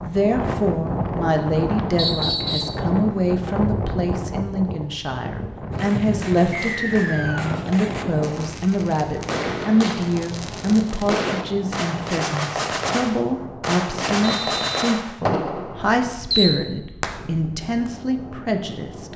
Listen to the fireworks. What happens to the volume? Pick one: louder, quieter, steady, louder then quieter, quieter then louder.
louder.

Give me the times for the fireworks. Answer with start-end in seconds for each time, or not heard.
5.7-17.2.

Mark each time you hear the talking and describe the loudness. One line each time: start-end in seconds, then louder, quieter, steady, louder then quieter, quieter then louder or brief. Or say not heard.
0.0-19.1 steady.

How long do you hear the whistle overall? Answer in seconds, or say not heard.
3 s.